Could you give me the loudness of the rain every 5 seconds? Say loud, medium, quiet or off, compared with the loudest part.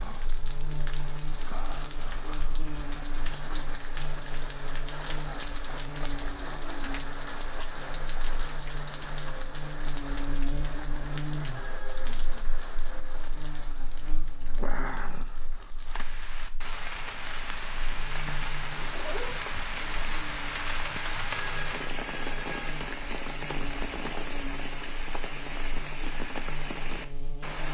medium, loud, medium, loud, loud, loud.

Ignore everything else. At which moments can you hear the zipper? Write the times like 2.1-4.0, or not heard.
18.7-19.4.